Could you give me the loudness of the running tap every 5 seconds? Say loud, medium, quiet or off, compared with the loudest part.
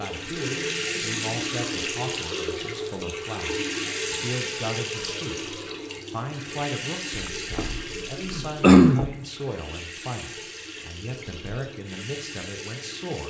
loud, medium, medium.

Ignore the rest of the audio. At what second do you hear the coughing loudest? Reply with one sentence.
The volume of the coughing peaks at 9 seconds.